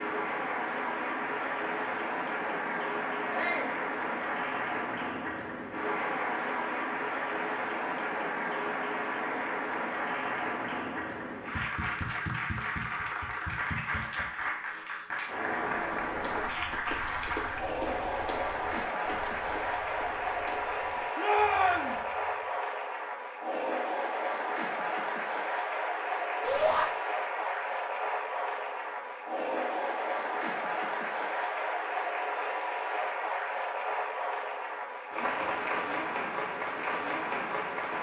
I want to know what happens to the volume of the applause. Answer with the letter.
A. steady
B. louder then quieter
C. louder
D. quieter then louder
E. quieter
A.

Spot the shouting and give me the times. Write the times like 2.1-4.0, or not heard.
3.3-3.8, 21.1-21.9, 26.4-26.9.